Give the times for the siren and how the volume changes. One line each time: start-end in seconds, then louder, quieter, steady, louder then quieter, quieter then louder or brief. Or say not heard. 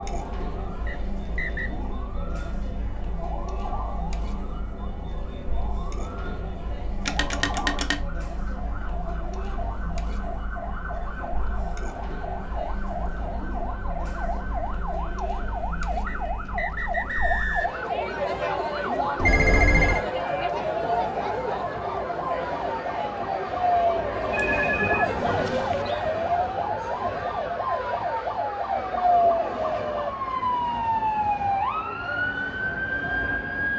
0.0-33.7 louder.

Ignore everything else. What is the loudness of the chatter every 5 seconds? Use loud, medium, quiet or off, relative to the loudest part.
medium, medium, medium, loud, loud, medium, medium.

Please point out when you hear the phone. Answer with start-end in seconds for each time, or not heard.
7.0-8.0, 19.1-20.1, 24.3-25.9.